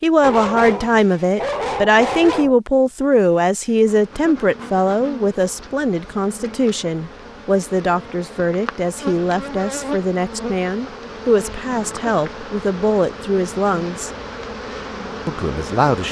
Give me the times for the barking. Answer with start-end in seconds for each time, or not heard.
0.2-2.5.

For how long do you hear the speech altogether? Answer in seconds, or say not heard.
15 s.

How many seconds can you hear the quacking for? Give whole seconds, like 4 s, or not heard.
not heard.